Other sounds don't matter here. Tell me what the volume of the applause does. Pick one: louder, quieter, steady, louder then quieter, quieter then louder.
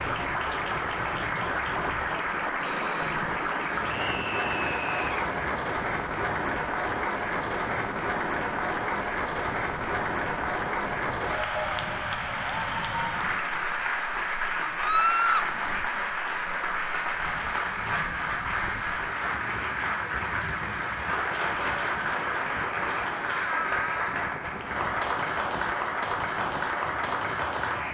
steady.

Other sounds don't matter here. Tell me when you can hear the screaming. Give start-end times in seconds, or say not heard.
3.9-5.3, 14.8-15.5, 23.3-24.2.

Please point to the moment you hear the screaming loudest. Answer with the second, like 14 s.
15 s.